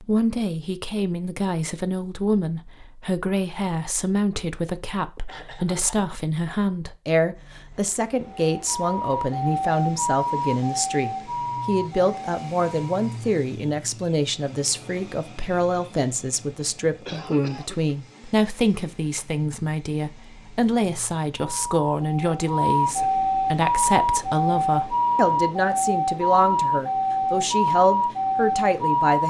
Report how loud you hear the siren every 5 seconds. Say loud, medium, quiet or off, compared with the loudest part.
off, medium, medium, off, loud, loud.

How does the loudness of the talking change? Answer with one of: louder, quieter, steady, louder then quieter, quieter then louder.
steady.